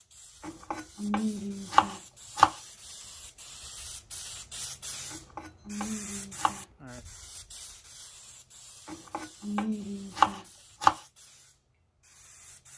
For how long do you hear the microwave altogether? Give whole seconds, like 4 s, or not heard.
not heard.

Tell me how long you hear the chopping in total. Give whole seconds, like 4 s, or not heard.
6 s.